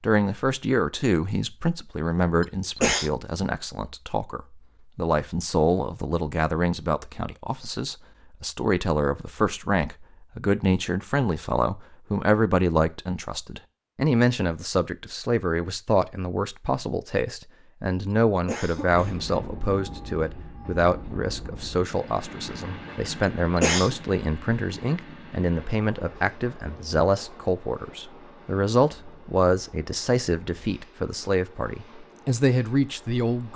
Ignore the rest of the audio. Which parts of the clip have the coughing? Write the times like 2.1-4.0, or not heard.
2.4-3.1, 18.1-19.3, 23.2-23.9.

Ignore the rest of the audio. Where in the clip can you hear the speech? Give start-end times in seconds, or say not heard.
0.0-33.5.